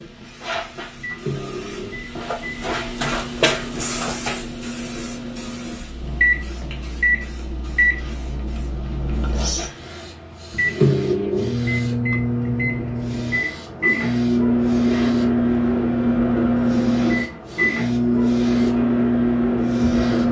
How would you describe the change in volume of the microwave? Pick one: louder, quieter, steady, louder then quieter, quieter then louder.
louder.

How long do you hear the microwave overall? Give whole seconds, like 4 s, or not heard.
20 s.